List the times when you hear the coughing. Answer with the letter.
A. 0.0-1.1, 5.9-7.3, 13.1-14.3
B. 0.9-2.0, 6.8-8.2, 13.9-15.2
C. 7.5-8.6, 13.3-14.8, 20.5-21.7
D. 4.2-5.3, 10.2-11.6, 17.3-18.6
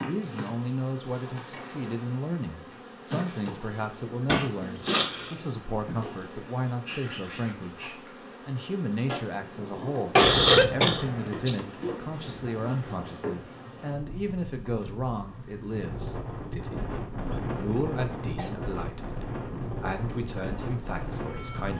D.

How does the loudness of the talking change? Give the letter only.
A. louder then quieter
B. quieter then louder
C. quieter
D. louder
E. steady
E.